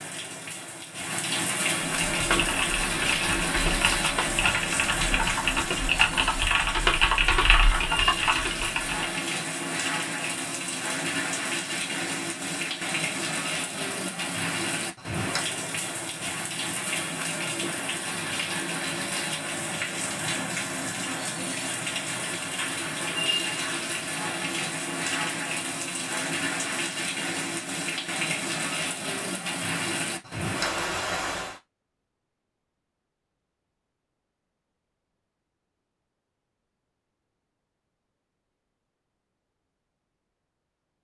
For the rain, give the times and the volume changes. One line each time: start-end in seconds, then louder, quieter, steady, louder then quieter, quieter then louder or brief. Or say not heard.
0.0-31.6 steady.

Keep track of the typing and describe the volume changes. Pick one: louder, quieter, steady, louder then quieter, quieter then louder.
louder.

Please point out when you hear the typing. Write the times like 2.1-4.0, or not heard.
2.1-9.1.